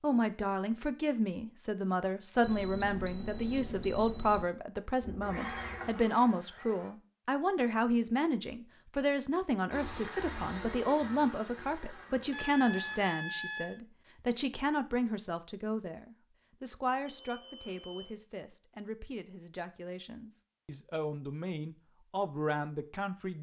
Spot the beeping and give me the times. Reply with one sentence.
The beeping can be heard from 2.4 to 4.5 s, from 12.3 to 13.8 s and from 17.1 to 18.1 s.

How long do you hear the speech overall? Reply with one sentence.
You can hear the speech for 23 seconds altogether.